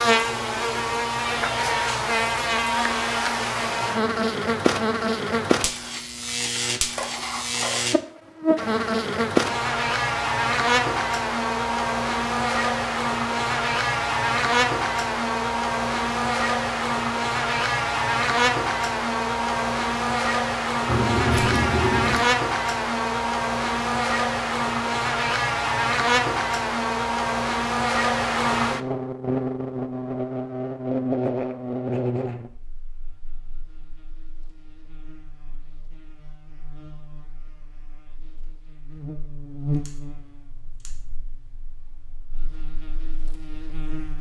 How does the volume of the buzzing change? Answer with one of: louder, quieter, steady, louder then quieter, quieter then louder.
quieter.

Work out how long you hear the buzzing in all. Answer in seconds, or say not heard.
44 s.